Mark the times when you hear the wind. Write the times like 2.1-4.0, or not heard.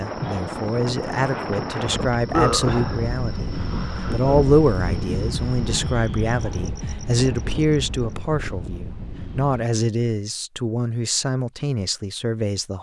0.0-9.7.